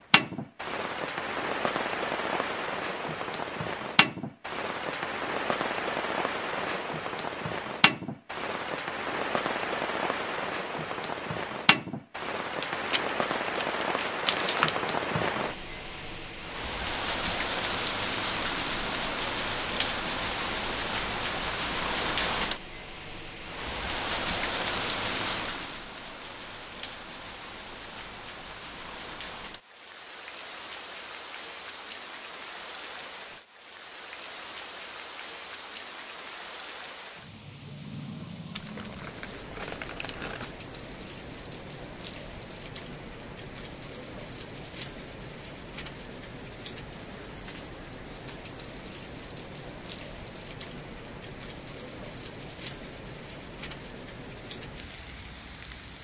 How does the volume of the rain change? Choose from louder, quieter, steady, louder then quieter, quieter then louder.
quieter.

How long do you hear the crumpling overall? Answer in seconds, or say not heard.
4 s.